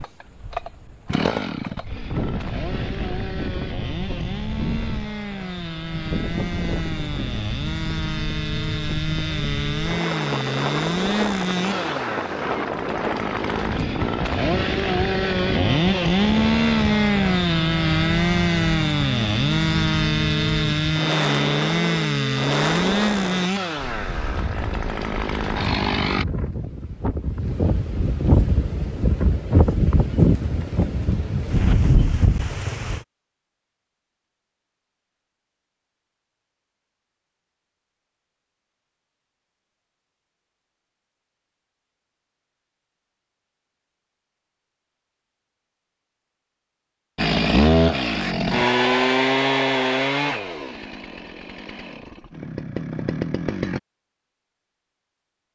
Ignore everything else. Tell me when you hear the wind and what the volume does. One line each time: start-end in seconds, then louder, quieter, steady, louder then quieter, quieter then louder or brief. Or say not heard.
0.0-33.0 louder.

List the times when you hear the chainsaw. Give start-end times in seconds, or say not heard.
0.0-26.2, 47.1-53.8.